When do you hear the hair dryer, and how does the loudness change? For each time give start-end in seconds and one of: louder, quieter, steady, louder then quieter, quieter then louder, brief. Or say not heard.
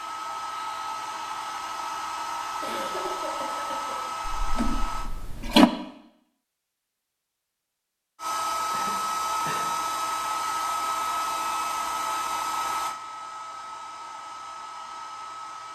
0.0-5.1 steady
8.2-15.6 quieter.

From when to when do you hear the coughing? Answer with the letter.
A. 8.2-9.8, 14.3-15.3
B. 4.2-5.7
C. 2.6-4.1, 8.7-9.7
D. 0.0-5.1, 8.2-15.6
C.